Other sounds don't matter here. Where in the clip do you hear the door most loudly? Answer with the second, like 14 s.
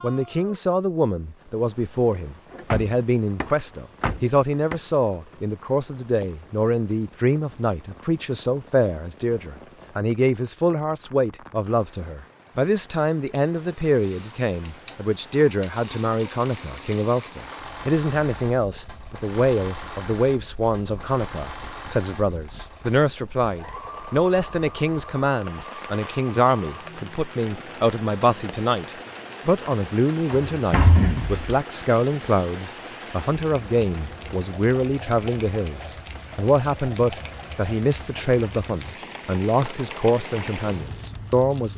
31 s.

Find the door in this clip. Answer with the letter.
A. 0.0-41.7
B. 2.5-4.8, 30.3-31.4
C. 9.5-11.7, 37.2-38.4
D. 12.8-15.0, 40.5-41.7
B.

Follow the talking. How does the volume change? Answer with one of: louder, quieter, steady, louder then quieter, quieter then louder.
steady.